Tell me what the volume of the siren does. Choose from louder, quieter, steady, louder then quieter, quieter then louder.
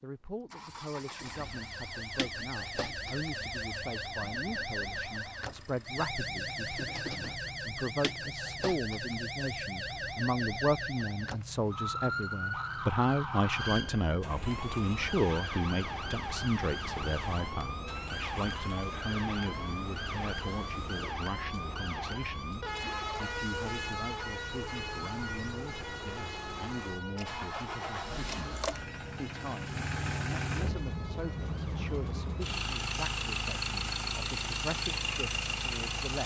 quieter.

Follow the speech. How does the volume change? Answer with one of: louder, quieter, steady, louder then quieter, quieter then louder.
louder then quieter.